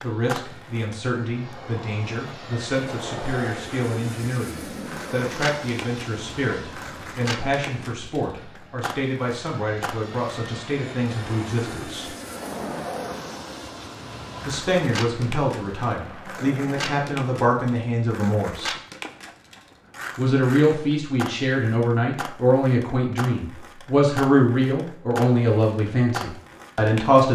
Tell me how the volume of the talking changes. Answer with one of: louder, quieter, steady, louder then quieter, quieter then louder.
louder.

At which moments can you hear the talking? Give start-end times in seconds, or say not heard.
0.0-12.1, 14.4-18.8, 20.1-27.2.